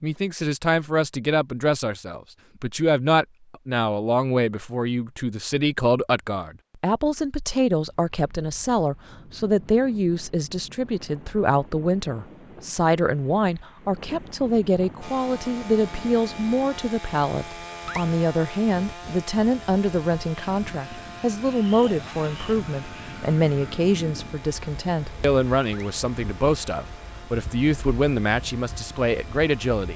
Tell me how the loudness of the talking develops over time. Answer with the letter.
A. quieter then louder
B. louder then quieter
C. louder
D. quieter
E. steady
E.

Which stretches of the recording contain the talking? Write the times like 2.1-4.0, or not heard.
0.0-29.9.